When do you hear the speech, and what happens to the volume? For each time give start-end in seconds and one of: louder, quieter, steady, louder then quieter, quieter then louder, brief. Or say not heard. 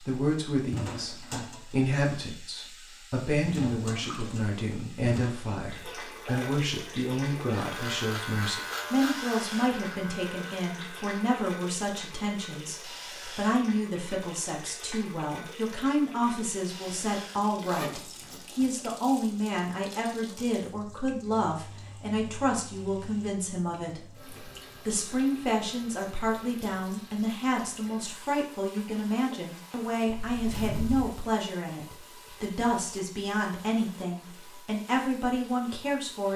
0.0-36.3 steady.